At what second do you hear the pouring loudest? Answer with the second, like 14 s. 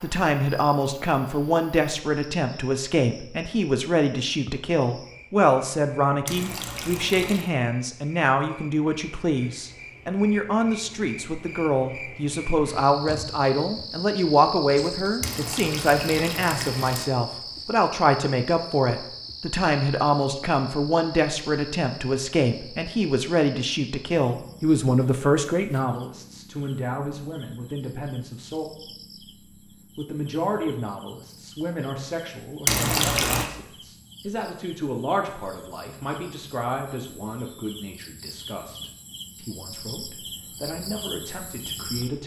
33 s.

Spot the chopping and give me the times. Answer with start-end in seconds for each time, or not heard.
not heard.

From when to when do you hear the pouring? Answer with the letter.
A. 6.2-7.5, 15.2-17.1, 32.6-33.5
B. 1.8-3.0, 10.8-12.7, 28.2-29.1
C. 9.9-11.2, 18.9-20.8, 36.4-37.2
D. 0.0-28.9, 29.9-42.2
A.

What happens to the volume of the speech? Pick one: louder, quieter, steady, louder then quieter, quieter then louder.
quieter.